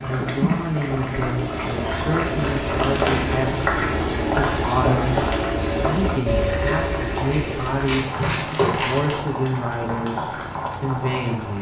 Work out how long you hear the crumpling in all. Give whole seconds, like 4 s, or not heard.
3 s.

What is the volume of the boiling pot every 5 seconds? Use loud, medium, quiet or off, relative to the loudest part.
loud, loud, medium.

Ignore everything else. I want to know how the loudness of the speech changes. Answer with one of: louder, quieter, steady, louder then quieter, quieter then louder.
steady.